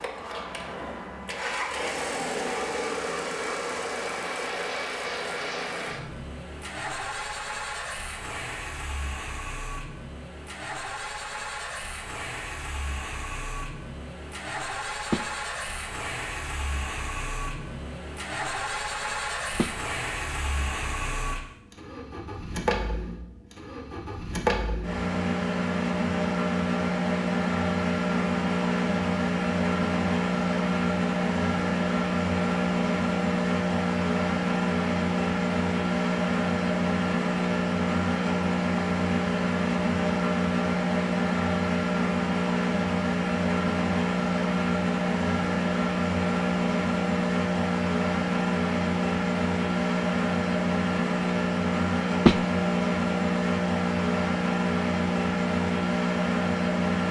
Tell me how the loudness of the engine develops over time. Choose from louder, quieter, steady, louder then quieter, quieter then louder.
louder.